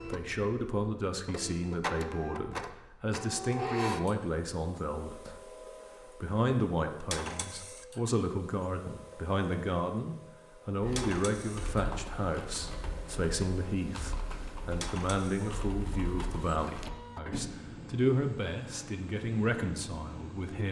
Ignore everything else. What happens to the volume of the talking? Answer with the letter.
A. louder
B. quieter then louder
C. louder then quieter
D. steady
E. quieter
D.